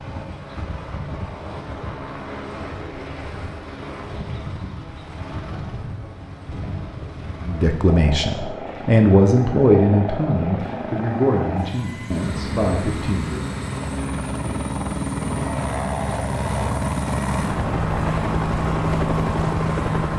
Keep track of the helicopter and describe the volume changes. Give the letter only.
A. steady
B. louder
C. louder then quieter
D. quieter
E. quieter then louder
B.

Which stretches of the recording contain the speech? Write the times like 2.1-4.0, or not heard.
7.5-13.4.